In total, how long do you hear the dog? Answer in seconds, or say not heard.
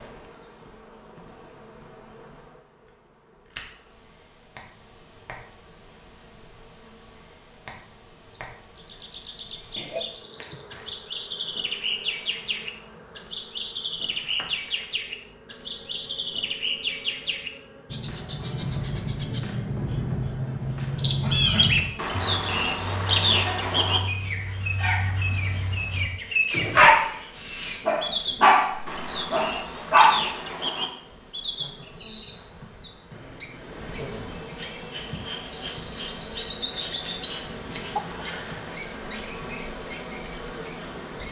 9 s.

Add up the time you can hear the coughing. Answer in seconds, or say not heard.
2 s.